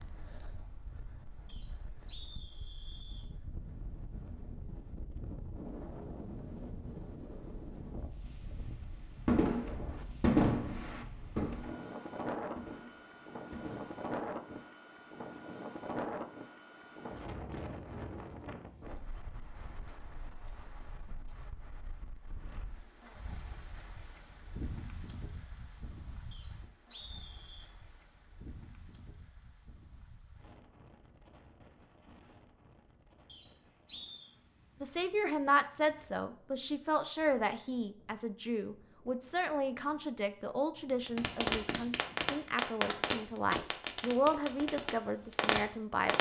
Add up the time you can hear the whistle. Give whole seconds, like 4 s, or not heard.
4 s.